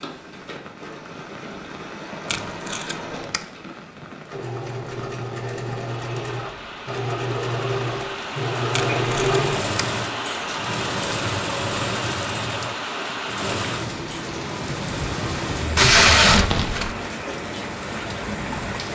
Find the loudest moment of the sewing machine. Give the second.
9 s.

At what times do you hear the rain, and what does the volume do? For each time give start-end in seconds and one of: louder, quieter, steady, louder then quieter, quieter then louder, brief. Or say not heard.
0.0-18.9 louder.